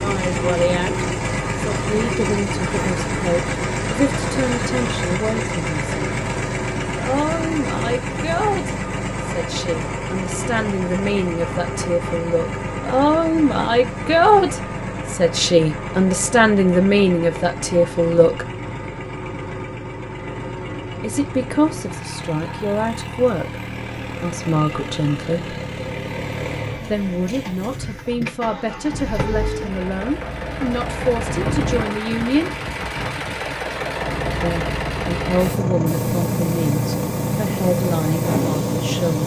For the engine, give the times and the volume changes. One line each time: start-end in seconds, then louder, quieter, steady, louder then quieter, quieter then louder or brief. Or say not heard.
0.0-39.2 quieter then louder.